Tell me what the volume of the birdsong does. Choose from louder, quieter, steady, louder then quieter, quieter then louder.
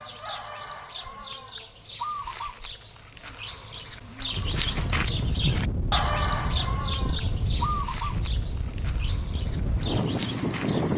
louder then quieter.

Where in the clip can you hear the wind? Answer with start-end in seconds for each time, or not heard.
4.3-10.9.